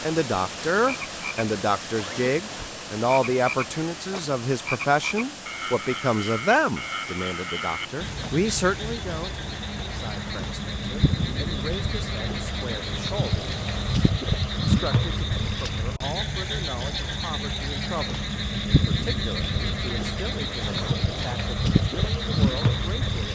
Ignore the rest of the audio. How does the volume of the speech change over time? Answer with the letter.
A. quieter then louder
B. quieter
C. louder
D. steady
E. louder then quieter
B.